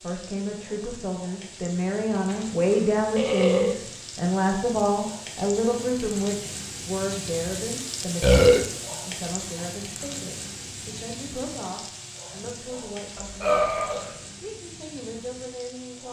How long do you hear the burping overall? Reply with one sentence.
You can hear the burping for 3 seconds altogether.